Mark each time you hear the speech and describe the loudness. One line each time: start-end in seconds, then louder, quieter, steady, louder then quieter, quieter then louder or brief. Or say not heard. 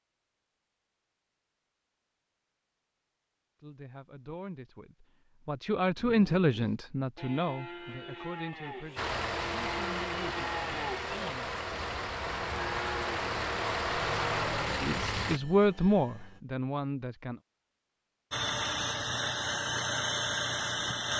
3.6-11.5 louder then quieter
14.8-17.4 brief.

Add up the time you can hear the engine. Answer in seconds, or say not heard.
9 s.